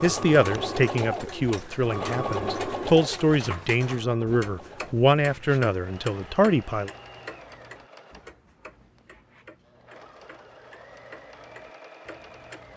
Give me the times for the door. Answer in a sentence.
You can hear the door from 3.4 to 4.1 s.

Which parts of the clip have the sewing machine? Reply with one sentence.
The sewing machine can be heard from 0.0 to 12.7 s.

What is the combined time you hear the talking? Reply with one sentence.
You can hear the talking for 7 seconds altogether.